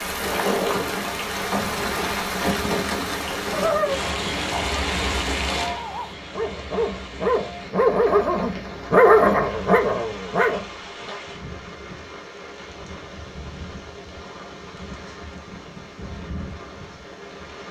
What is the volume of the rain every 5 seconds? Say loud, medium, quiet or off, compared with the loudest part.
loud, medium, quiet, quiet.